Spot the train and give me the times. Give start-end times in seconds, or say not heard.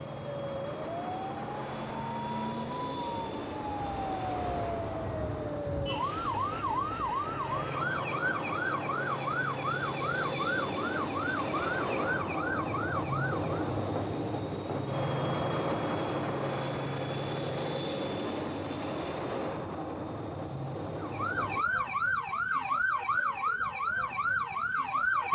0.0-21.6.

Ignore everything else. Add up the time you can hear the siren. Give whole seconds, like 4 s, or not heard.
18 s.